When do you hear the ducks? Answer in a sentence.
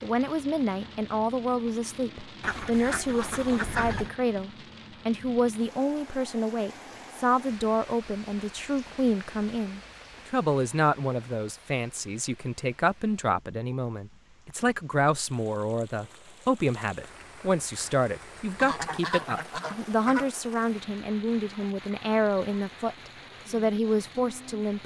The ducks can be heard from 2.4 to 4.1 s and from 18.6 to 20.3 s.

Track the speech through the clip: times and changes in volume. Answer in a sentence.
The speech can be heard from 0.0 to 24.8 s, at a steady volume.